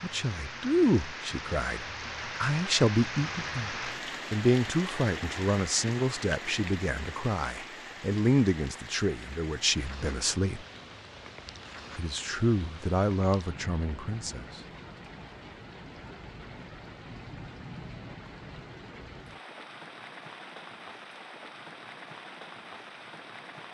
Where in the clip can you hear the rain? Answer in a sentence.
The rain can be heard from 0.0 to 23.6 s.